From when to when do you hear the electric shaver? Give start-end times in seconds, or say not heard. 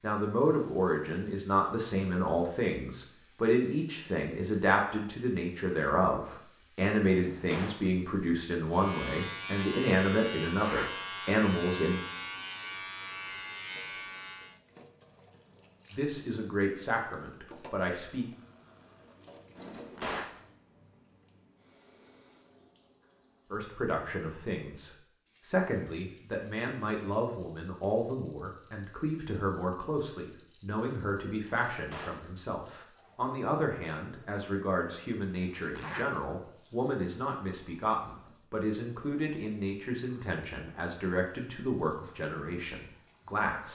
8.7-14.6.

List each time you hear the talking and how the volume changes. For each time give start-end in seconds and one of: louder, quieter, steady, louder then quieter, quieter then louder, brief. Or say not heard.
0.0-12.0 steady
15.9-18.2 brief
23.5-43.7 steady.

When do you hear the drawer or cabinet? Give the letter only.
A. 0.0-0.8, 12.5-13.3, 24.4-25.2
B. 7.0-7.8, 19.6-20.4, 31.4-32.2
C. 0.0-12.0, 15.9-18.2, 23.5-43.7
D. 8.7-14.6
B.